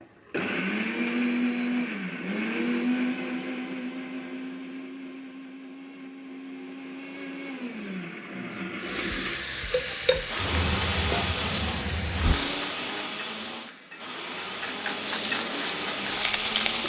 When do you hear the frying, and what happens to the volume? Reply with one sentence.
The frying can be heard from 8.8 to 16.8 s, getting quieter then louder.